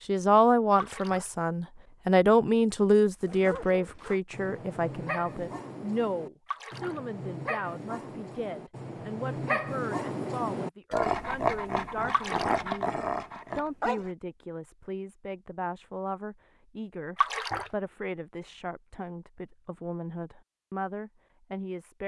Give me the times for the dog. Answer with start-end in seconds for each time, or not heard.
3.2-14.1.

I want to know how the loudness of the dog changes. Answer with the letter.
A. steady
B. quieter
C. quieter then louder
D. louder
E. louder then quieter
D.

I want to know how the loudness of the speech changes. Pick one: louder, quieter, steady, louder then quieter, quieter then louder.
quieter.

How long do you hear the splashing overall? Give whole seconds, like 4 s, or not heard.
2 s.